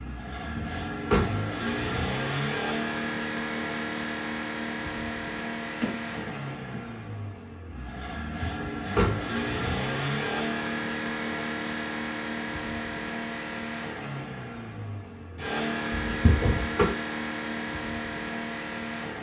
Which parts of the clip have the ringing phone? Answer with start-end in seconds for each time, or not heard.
5.8-6.8.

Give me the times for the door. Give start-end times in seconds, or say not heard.
0.6-1.4, 8.4-9.2, 15.9-16.9.